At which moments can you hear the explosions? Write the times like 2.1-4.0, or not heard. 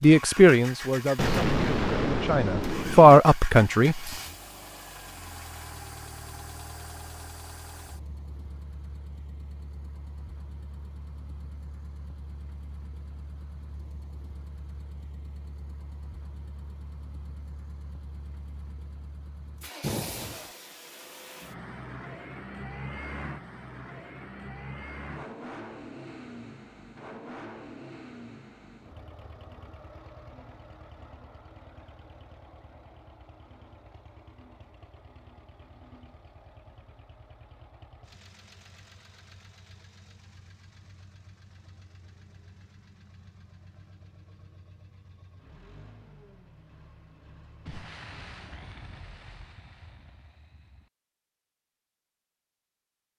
1.1-3.1, 19.8-20.5, 47.6-50.9.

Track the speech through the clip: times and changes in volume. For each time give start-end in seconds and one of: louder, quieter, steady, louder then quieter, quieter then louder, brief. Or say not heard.
0.0-4.0 quieter then louder.